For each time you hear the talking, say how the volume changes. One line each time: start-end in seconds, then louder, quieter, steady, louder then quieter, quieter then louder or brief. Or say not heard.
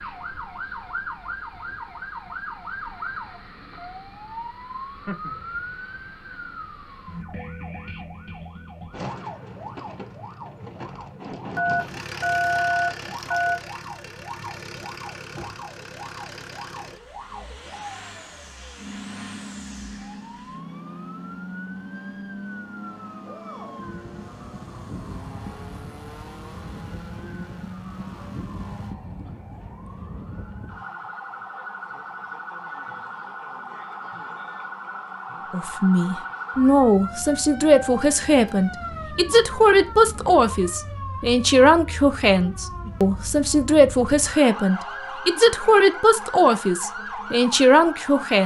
35.5-48.4 steady.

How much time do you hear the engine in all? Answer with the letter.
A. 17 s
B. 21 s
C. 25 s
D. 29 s
A.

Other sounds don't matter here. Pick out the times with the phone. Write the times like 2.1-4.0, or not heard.
11.6-13.6.